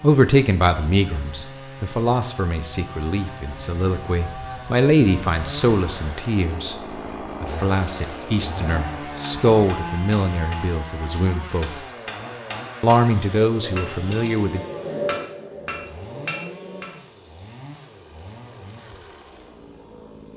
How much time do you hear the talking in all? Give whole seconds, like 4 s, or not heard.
13 s.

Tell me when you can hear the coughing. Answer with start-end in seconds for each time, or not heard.
not heard.